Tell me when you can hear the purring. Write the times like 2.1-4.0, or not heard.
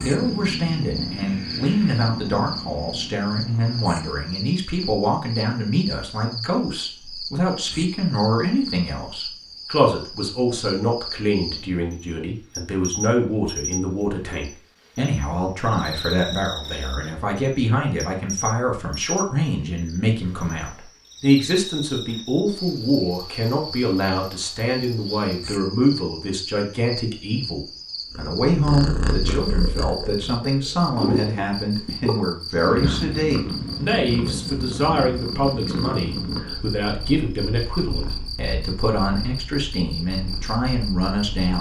0.0-4.3, 28.1-41.5.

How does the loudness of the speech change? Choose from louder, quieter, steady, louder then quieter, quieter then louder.
steady.